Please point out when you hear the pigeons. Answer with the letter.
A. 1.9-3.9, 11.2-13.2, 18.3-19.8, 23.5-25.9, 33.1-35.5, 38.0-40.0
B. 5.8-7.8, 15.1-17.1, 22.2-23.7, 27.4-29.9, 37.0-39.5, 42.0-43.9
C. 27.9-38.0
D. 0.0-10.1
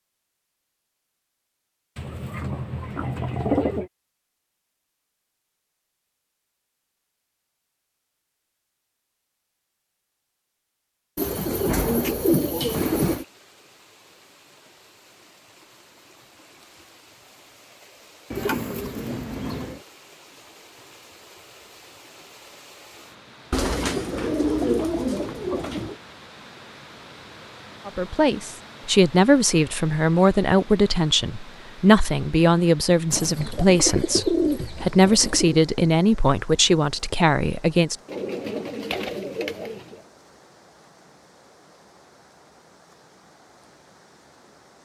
A.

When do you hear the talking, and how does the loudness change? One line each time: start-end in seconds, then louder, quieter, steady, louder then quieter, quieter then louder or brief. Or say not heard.
27.9-38.0 steady.